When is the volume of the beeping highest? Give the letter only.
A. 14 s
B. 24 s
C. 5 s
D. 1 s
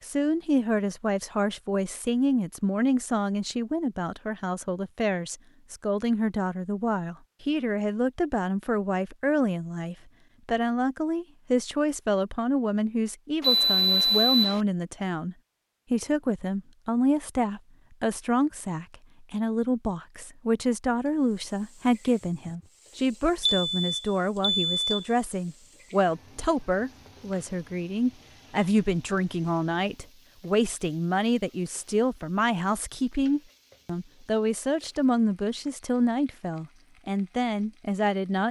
A.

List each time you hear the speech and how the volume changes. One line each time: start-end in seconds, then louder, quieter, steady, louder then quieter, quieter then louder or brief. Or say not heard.
0.0-38.4 steady.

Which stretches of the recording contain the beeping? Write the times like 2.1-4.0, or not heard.
13.4-14.6, 23.4-25.1.